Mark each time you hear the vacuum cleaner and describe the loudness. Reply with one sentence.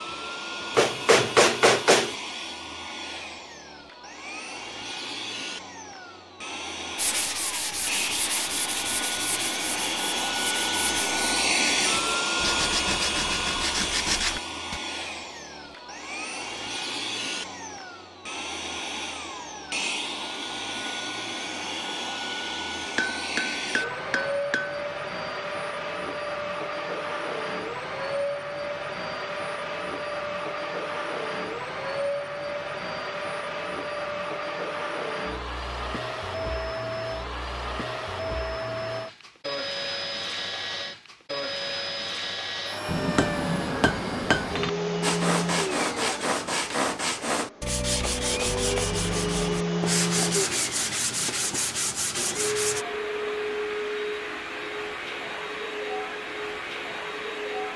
The vacuum cleaner can be heard from 0.0 to 57.7 s, at a steady volume.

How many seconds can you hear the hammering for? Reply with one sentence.
You can hear the hammering for 5 seconds altogether.